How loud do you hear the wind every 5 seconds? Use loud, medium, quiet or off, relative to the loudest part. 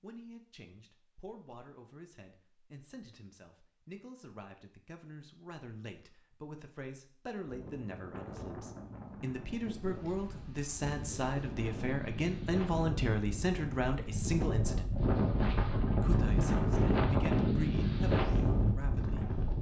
off, quiet, medium, loud.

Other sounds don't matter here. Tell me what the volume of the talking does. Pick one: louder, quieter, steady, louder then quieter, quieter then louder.
louder then quieter.